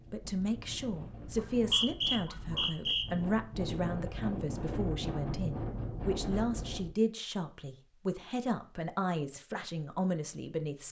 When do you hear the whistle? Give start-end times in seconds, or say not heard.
1.3-3.0.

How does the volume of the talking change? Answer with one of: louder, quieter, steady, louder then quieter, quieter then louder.
steady.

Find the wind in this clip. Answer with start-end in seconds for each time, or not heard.
0.0-6.9.